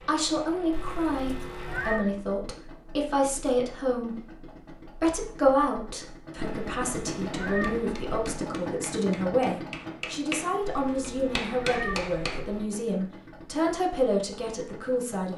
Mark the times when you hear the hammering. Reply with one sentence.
You can hear the hammering from 7.5 to 12.4 s.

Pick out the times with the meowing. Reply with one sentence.
You can hear the meowing from 0.7 to 2.0 s, from 6.4 to 8.4 s and from 10.6 to 12.7 s.